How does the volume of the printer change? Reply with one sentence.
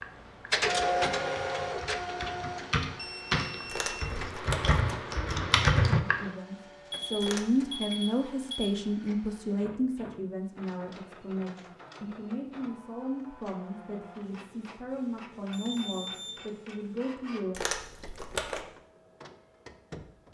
The loudness of the printer goes down.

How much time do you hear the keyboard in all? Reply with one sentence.
The keyboard can be heard for 6 seconds in total.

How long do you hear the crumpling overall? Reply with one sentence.
The crumpling can be heard for 3 seconds in total.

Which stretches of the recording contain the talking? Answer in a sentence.
You can hear the talking from 6.0 to 17.6 s.